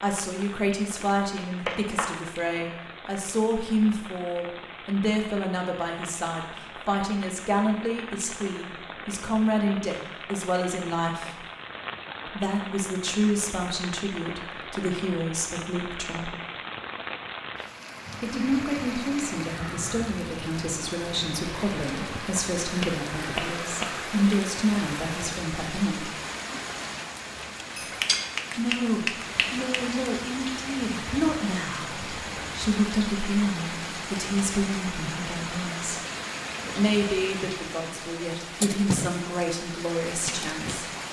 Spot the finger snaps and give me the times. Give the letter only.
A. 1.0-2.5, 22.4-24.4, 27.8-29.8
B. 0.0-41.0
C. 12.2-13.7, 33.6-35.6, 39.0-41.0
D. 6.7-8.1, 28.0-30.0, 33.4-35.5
A.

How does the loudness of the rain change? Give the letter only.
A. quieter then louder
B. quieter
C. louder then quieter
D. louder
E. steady
D.